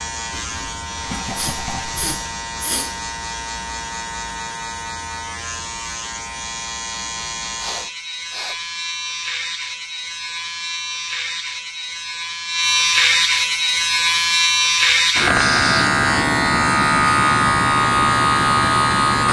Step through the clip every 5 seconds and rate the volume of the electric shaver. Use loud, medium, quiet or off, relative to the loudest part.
quiet, quiet, loud, loud.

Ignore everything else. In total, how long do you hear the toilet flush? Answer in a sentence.
You can hear the toilet flush for 2 seconds altogether.